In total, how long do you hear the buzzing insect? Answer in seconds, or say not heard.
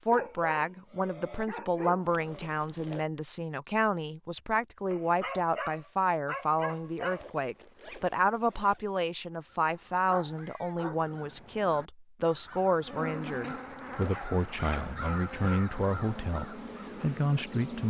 5 s.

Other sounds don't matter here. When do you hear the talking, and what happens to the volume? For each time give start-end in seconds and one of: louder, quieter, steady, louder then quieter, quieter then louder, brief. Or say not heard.
0.0-17.8 steady.